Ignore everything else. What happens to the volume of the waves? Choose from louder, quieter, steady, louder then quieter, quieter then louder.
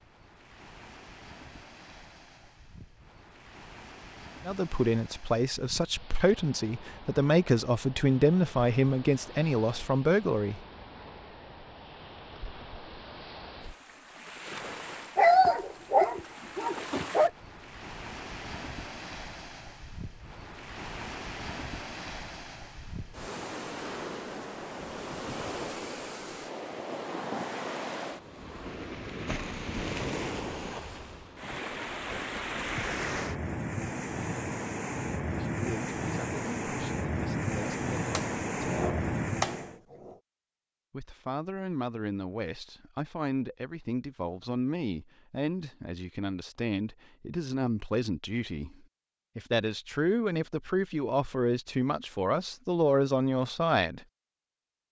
louder.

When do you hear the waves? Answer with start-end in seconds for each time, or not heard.
0.0-39.8.